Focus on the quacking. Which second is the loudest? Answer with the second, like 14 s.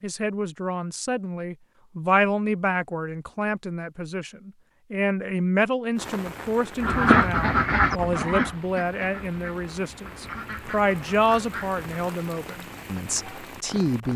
7 s.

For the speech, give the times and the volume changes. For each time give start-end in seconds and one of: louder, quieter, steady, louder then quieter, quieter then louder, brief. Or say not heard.
0.0-14.1 steady.